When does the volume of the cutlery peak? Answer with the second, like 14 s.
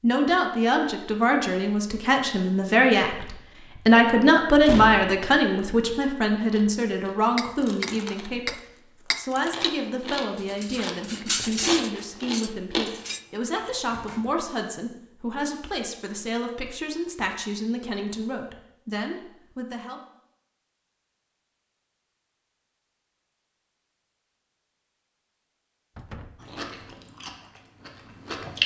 11 s.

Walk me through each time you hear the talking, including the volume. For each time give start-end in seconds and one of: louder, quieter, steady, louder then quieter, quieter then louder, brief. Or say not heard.
0.0-20.0 quieter.